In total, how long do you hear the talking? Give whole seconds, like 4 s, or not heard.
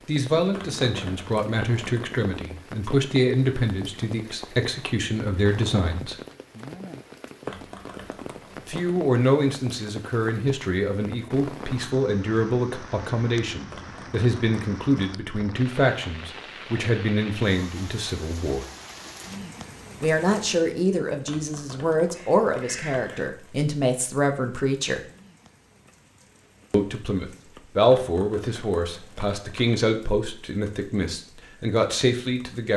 27 s.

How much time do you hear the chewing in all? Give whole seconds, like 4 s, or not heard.
not heard.